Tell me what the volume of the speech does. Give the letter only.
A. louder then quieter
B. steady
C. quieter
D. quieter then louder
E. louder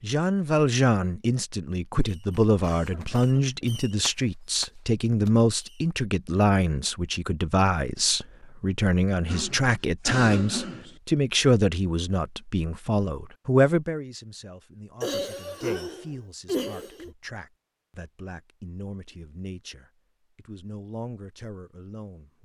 C.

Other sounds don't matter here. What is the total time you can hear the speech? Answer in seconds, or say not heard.
22 s.